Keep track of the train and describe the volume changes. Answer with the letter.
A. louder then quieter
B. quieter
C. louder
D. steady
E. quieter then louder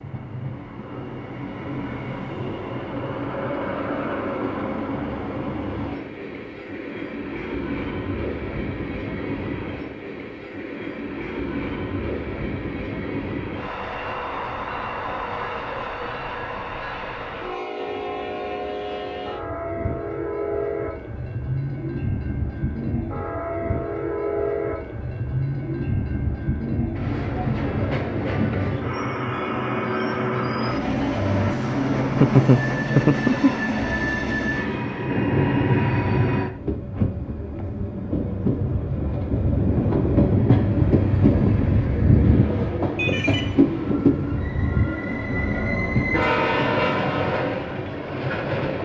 C.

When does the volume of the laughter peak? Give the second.
32 s.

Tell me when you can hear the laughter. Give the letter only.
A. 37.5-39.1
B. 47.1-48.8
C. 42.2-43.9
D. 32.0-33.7
D.